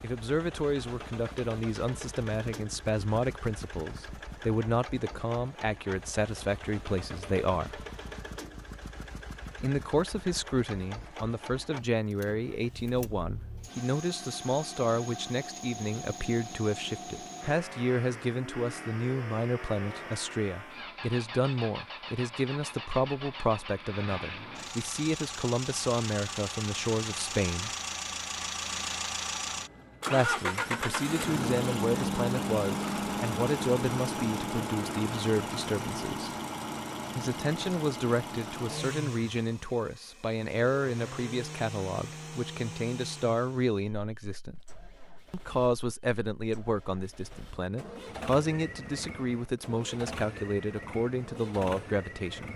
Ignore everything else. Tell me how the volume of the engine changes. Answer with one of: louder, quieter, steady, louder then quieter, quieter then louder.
louder then quieter.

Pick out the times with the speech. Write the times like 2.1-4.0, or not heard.
0.0-7.8, 9.6-27.7, 30.1-36.3, 37.1-44.5, 45.3-52.5.